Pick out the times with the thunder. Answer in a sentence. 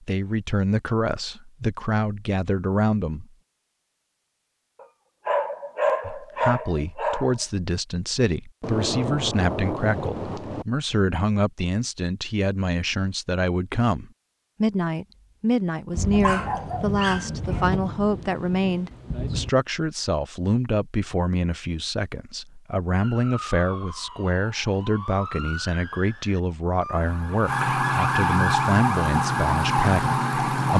The thunder can be heard from 8.6 to 10.7 s and from 15.9 to 19.5 s.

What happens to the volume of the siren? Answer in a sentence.
The loudness of the siren goes up.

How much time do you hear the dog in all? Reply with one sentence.
You can hear the dog for 4 seconds altogether.